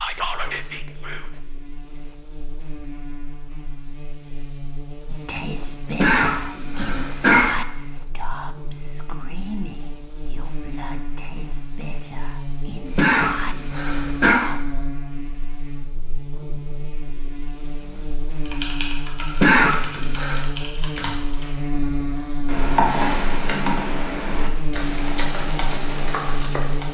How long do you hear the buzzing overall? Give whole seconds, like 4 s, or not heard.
27 s.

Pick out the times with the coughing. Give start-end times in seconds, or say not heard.
5.8-7.5, 12.8-14.4, 19.2-20.5.